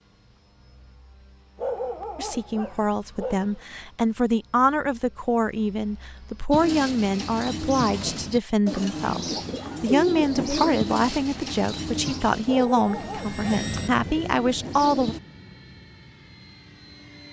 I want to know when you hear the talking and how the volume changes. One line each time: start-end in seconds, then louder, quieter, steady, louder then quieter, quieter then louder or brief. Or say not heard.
2.1-15.2 steady.